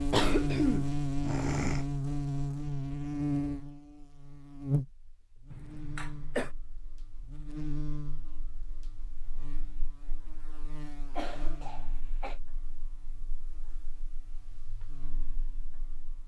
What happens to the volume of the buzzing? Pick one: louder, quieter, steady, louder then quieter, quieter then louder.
quieter.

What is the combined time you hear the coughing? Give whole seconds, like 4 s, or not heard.
4 s.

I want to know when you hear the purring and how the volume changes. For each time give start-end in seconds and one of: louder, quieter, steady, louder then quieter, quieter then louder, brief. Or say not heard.
not heard.